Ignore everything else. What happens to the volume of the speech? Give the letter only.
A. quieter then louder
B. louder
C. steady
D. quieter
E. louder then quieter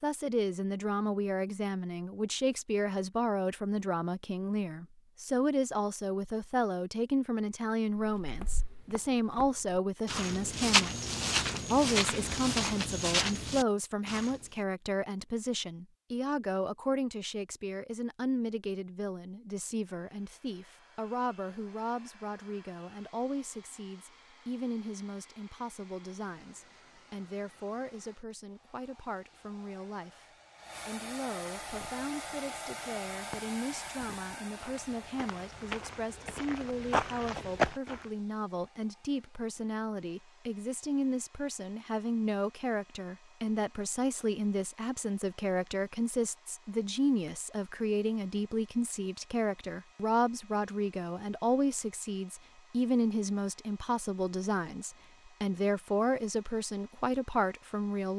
A.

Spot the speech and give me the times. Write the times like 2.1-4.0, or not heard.
0.0-11.1, 11.7-30.2, 30.9-58.1.